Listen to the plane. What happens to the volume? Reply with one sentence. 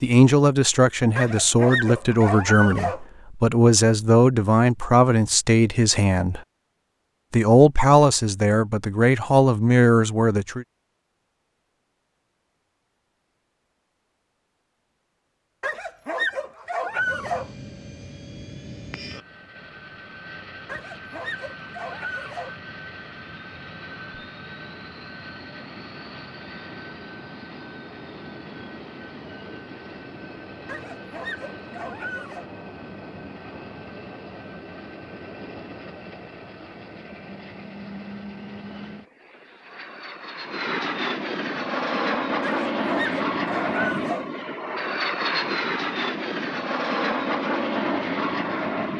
The volume of the plane goes up.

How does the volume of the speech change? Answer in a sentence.
The volume of the speech stays about the same.